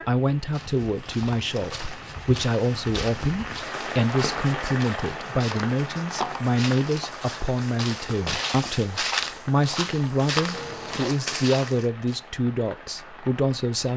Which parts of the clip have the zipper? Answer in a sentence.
You can hear the zipper from 10.5 to 11.2 s.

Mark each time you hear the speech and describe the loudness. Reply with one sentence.
You can hear the speech from 0.1 to 13.9 s, at a steady volume.